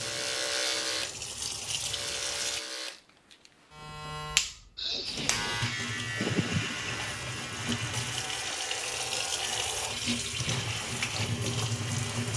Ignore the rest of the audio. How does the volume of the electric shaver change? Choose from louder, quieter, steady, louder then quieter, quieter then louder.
quieter.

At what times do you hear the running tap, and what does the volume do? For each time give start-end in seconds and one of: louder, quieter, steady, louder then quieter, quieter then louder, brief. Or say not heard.
0.0-2.6 brief
5.0-12.3 louder.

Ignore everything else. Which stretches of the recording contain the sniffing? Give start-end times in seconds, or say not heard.
4.8-7.1.